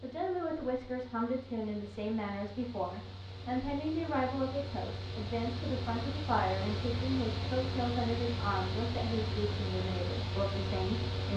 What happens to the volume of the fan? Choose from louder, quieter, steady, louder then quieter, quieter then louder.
louder.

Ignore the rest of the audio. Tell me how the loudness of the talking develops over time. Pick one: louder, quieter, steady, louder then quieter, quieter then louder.
steady.